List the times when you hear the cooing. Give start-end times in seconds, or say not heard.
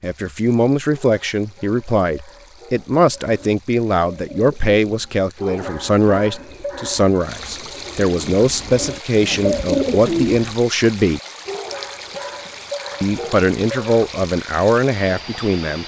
3.0-10.6.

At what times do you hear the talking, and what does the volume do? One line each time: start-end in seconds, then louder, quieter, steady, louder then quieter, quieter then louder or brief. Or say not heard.
0.0-11.2 steady
13.0-15.8 brief.